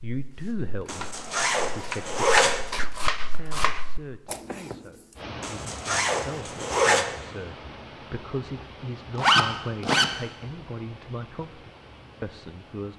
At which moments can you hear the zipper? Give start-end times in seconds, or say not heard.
0.8-2.6, 5.4-7.0, 9.2-10.1.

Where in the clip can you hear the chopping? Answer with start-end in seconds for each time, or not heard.
0.0-4.8.